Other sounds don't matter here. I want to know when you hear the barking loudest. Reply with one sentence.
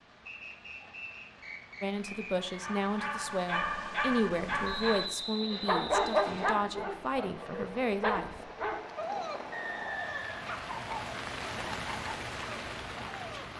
The volume of the barking peaks at 6 seconds.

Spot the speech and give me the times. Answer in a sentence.
The speech can be heard from 1.8 to 8.3 s.